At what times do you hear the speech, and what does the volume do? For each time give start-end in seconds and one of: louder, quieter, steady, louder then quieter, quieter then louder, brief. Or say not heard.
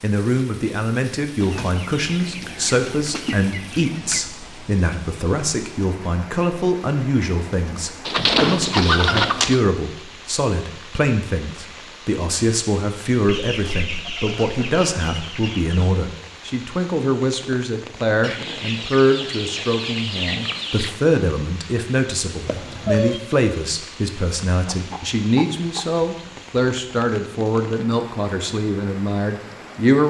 0.0-30.0 steady.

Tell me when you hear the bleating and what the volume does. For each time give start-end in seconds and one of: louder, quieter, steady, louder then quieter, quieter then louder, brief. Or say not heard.
not heard.